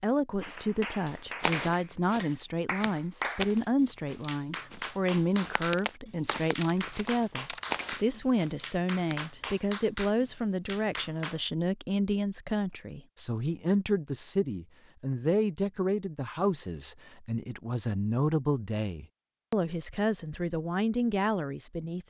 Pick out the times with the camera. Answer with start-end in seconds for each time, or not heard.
6.6-7.8.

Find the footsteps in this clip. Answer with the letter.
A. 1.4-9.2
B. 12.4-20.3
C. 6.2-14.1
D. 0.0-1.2
A.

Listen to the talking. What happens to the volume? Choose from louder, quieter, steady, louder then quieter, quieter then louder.
steady.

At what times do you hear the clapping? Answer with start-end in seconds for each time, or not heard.
0.4-11.4.